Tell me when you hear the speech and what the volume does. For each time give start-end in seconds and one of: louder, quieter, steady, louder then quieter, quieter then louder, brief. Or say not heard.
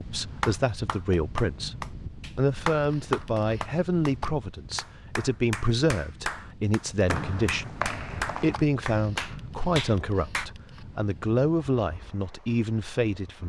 0.0-13.4 steady.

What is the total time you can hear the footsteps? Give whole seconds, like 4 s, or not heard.
not heard.